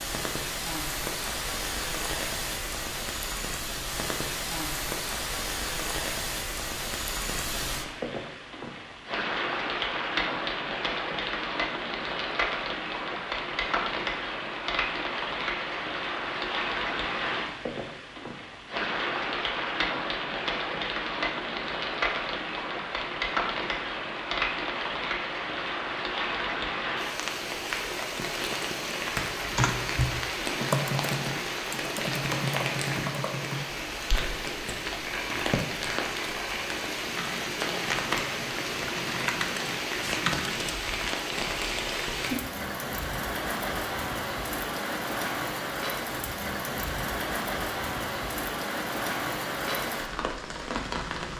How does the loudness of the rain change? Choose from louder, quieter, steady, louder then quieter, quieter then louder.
steady.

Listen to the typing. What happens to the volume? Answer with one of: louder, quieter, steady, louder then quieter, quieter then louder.
quieter then louder.